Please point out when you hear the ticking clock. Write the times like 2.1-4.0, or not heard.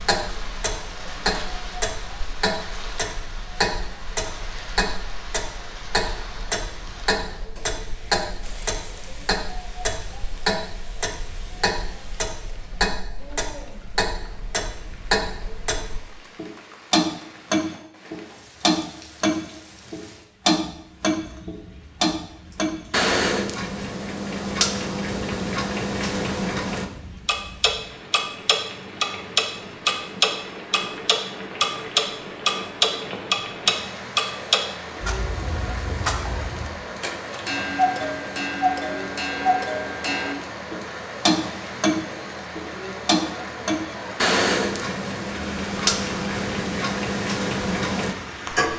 0.0-48.7.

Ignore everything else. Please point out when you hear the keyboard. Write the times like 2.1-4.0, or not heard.
not heard.